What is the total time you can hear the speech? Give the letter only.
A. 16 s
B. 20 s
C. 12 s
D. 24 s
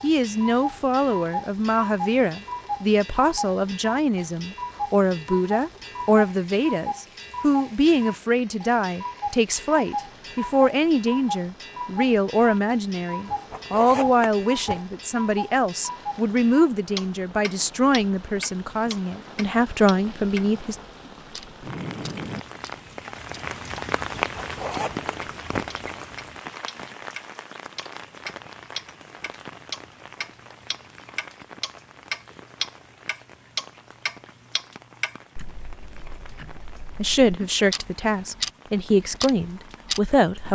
D.